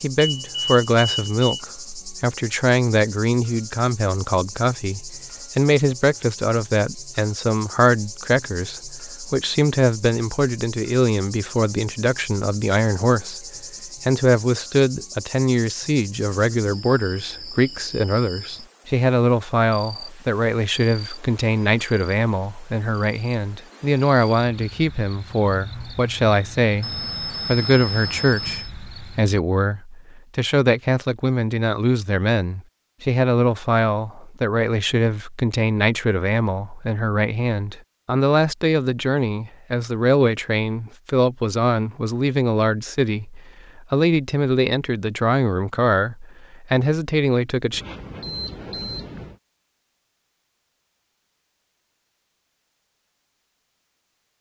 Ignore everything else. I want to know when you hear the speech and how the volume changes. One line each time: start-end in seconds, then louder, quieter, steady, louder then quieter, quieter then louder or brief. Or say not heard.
0.0-47.8 steady.